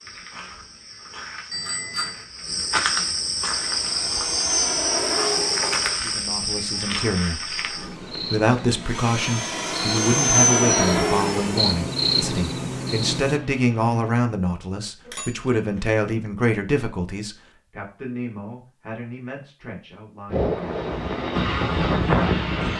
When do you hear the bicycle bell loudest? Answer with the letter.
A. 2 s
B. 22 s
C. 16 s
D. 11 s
A.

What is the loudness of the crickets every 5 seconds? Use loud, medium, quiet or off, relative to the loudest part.
loud, loud, loud, off, off.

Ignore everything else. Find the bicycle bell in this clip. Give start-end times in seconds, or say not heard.
1.5-2.2, 15.1-15.9.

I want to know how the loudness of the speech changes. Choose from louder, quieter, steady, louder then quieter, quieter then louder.
quieter.